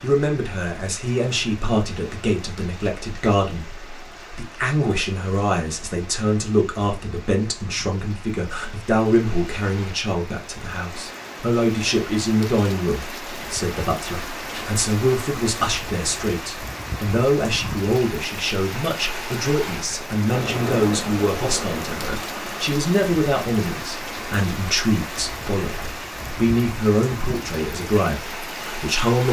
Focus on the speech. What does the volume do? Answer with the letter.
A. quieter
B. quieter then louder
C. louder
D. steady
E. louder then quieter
D.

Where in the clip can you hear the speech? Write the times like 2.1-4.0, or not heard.
0.0-29.2.